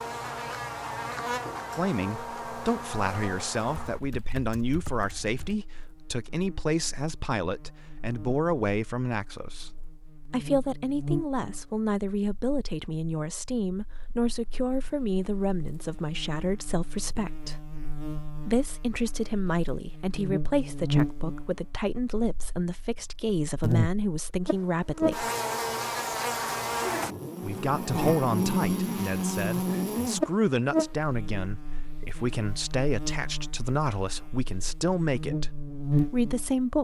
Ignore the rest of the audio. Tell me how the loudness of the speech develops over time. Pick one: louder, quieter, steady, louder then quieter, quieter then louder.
steady.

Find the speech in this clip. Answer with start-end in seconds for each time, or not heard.
1.8-17.6, 18.4-25.3, 27.4-36.7.